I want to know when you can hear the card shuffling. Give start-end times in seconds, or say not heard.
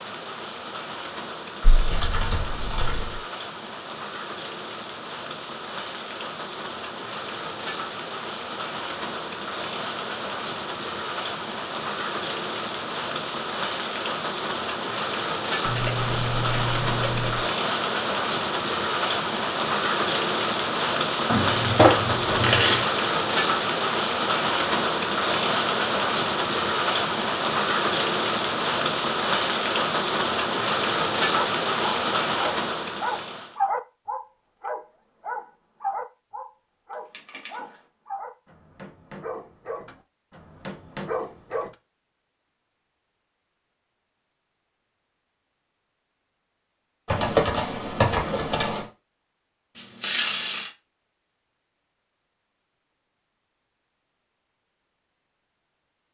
21.2-22.9, 49.8-50.7.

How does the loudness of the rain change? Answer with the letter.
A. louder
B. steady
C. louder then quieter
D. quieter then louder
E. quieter
A.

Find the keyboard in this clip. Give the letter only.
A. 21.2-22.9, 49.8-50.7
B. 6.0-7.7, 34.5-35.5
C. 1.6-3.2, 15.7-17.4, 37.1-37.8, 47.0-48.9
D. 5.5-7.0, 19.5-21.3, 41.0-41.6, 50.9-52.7
C.